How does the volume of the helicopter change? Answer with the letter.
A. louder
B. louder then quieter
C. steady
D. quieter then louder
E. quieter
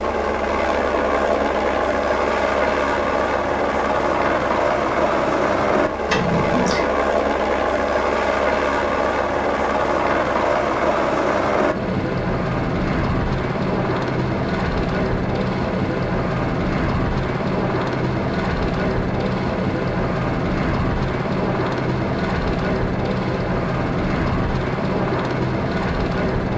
C.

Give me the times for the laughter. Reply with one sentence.
The laughter can be heard from 6.1 to 6.8 s.